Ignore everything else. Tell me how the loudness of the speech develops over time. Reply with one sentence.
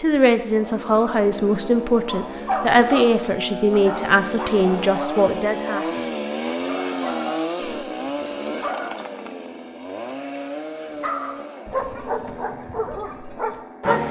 The volume of the speech stays about the same.